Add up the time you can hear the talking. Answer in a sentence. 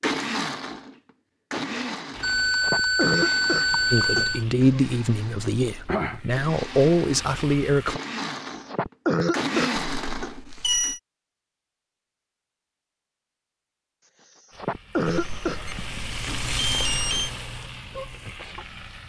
The talking can be heard for 4 seconds in total.